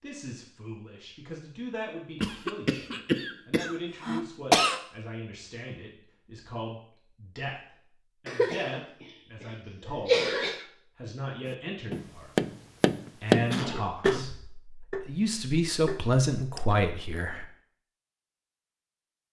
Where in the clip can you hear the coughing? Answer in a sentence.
You can hear the coughing from 2.2 to 4.8 s, from 8.2 to 8.8 s, from 10.1 to 10.6 s and from 13.1 to 14.3 s.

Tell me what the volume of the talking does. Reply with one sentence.
The loudness of the talking goes up.